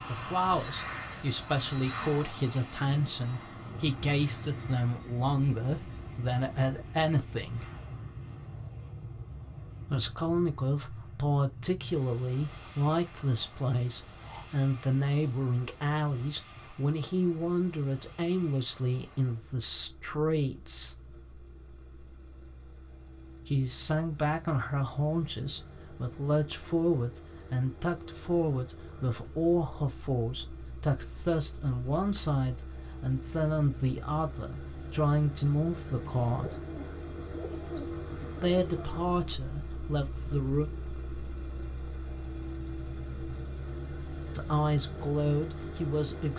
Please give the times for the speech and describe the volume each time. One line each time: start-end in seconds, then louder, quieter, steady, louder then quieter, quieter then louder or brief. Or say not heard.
0.1-7.7 steady
9.9-20.9 steady
23.4-36.6 steady
38.4-40.7 brief
44.3-46.3 brief.